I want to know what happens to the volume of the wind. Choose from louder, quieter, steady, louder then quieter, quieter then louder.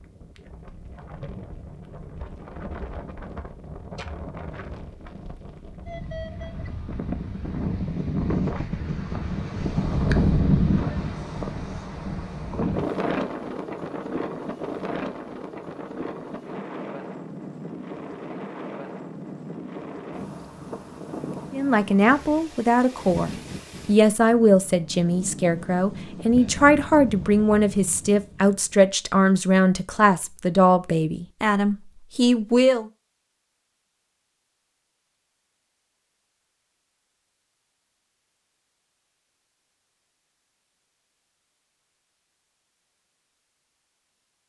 louder then quieter.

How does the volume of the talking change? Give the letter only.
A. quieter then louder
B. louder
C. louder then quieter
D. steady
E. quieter
D.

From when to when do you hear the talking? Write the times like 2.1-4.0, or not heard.
21.5-32.9.